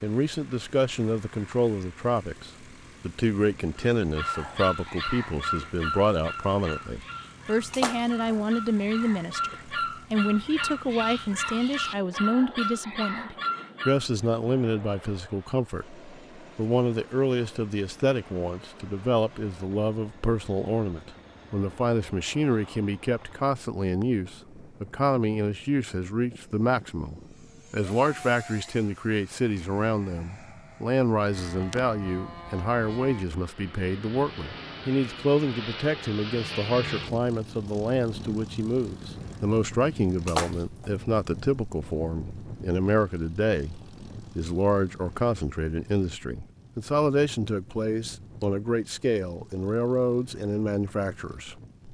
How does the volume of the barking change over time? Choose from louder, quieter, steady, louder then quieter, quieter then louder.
quieter then louder.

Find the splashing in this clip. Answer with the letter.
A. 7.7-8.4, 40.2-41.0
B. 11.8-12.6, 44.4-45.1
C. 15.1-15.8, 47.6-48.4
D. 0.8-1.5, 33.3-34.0
A.